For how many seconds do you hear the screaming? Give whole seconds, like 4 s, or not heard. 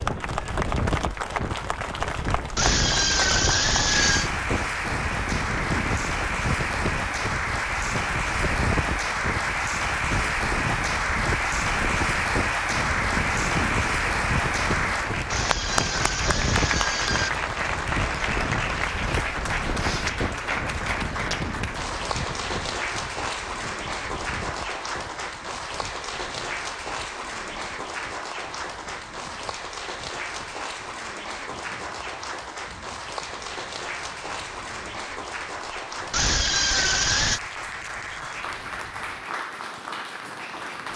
5 s.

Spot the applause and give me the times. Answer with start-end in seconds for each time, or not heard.
0.0-40.9.